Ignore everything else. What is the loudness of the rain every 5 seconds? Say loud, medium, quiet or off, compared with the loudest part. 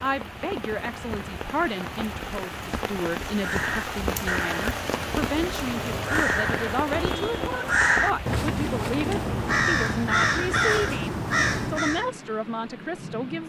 loud, loud, medium.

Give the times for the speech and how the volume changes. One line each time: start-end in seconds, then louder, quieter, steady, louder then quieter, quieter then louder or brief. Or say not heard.
0.0-13.4 steady.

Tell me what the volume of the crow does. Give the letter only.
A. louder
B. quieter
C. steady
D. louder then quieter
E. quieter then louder
A.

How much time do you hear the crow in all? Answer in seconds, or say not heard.
9 s.